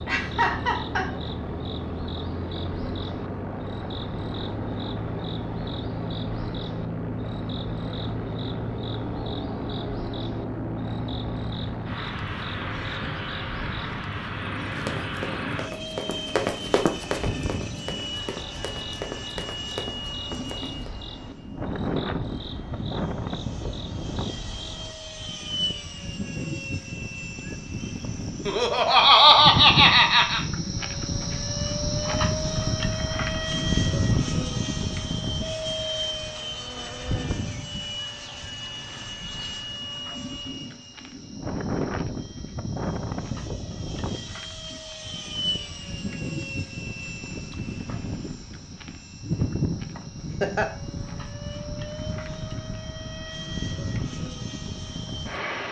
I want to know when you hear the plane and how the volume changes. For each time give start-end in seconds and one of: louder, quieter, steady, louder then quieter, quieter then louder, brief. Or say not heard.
0.0-55.6 steady.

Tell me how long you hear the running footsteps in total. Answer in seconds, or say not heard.
6 s.